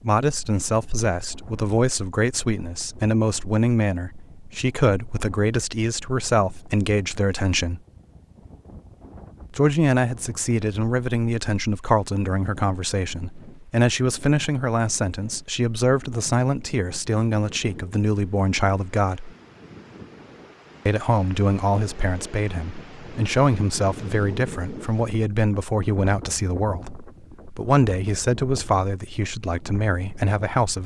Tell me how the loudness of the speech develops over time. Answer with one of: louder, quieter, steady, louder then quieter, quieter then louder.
steady.